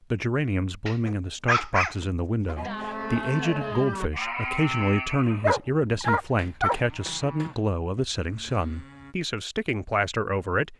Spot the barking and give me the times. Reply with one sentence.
The barking can be heard from 0.8 to 2.7 s and from 5.4 to 6.8 s.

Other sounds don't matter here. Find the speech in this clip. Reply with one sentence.
You can hear the speech from 0.1 to 10.7 s.